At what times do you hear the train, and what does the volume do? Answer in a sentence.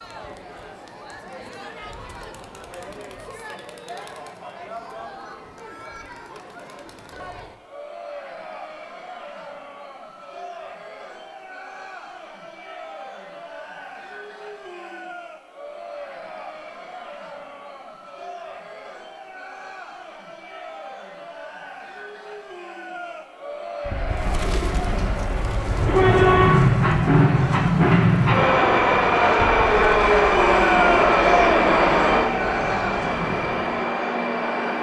You can hear the train from 25.6 to 34.7 s, getting quieter.